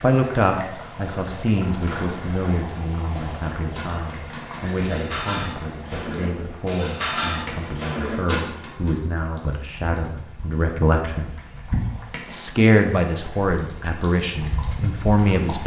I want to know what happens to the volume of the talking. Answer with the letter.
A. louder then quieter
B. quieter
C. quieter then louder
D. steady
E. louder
C.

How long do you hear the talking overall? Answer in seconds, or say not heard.
15 s.